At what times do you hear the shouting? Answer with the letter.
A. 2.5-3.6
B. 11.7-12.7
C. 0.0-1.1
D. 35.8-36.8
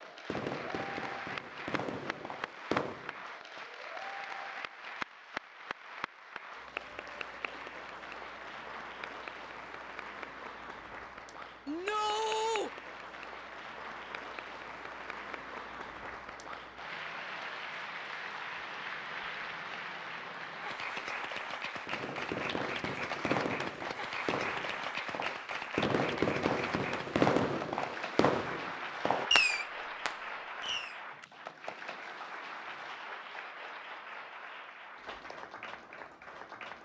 B.